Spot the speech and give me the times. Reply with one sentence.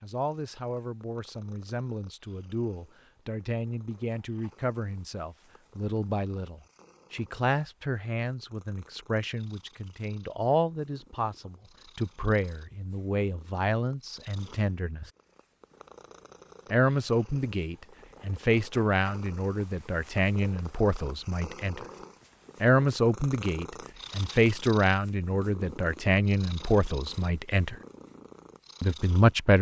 The speech can be heard from 0.0 to 15.1 s, from 16.7 to 21.9 s, from 22.6 to 27.8 s and from 28.8 to 29.5 s.